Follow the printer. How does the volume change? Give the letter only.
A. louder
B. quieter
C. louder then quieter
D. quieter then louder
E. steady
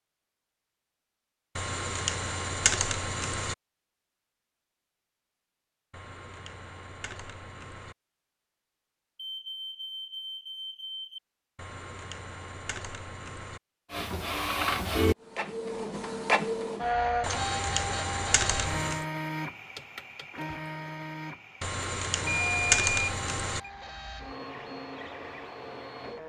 B.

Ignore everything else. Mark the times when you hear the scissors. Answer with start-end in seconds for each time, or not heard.
not heard.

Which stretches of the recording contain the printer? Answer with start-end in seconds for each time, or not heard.
13.9-26.2.